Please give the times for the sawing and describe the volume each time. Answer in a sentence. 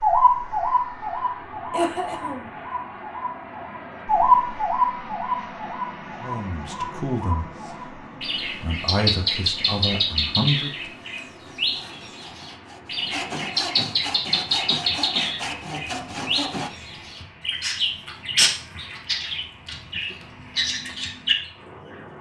The sawing can be heard from 11.4 to 16.7 s, getting louder.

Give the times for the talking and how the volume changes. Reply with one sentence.
You can hear the talking from 6.2 to 10.9 s, getting quieter then louder.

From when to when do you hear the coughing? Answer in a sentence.
You can hear the coughing from 1.7 to 2.5 s.